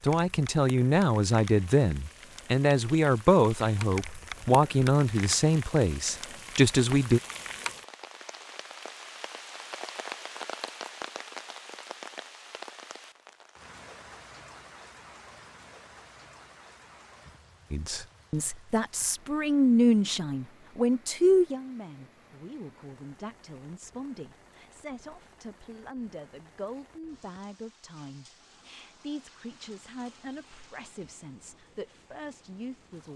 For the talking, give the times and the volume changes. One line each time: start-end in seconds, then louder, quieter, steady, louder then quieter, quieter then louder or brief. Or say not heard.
0.0-7.2 steady
17.7-33.1 quieter.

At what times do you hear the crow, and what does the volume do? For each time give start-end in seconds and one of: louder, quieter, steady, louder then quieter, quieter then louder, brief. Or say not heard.
not heard.